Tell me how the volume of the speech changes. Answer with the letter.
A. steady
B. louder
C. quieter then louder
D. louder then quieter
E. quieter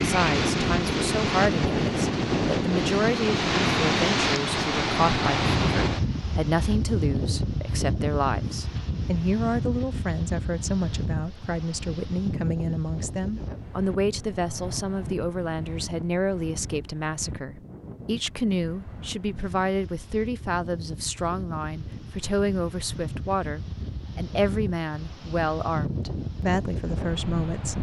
A.